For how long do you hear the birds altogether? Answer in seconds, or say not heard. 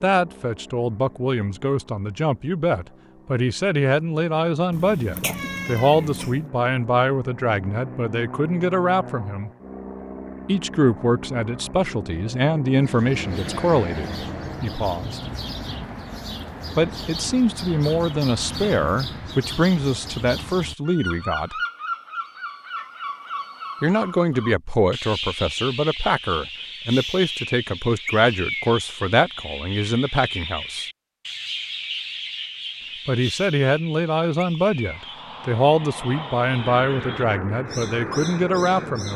26 s.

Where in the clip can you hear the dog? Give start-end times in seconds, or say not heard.
not heard.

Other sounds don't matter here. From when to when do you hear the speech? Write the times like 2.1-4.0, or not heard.
0.0-9.5, 10.4-15.2, 16.8-21.6, 23.8-30.9, 33.0-39.1.